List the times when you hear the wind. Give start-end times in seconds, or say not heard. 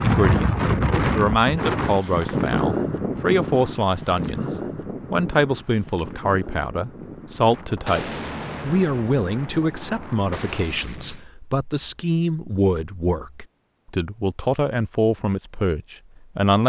0.0-10.7.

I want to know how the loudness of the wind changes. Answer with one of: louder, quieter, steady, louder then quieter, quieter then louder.
quieter.